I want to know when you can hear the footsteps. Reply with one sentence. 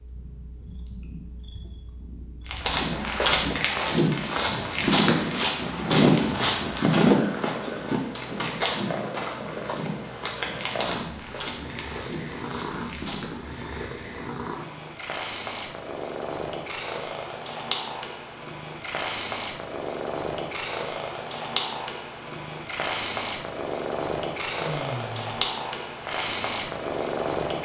The footsteps can be heard from 2.5 to 13.6 s.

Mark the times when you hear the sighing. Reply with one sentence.
You can hear the sighing from 24.6 to 25.4 s.